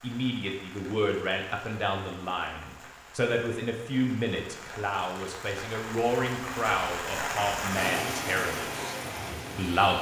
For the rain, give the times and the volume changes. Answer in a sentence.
You can hear the rain from 0.0 to 9.9 s, getting louder.